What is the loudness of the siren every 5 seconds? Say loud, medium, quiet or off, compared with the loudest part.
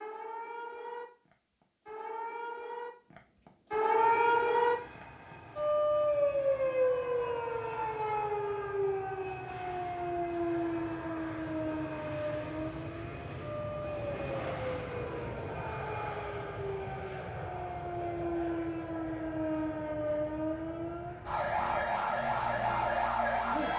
loud, loud, medium, medium, loud.